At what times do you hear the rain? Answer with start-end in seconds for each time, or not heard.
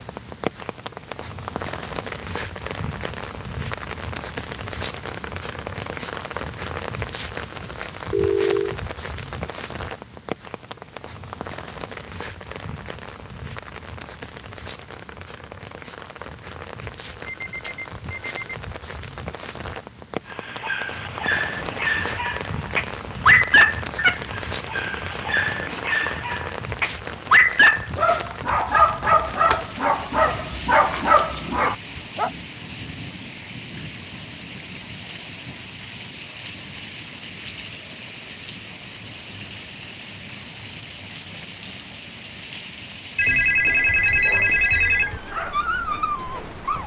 0.0-46.8.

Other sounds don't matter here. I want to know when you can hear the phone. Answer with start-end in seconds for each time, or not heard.
8.1-8.8, 16.8-18.6, 43.1-45.2.